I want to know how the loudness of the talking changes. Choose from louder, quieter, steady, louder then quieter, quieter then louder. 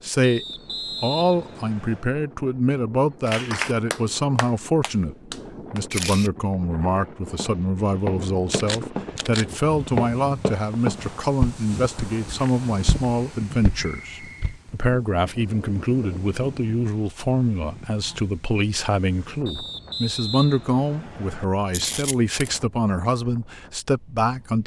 steady.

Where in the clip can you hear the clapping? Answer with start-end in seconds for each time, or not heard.
3.2-5.8.